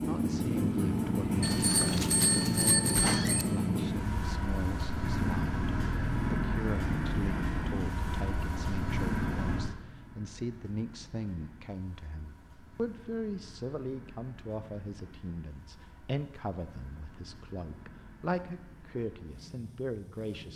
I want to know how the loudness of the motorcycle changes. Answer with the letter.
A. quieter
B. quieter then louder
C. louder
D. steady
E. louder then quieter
A.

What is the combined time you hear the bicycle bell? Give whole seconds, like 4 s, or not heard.
2 s.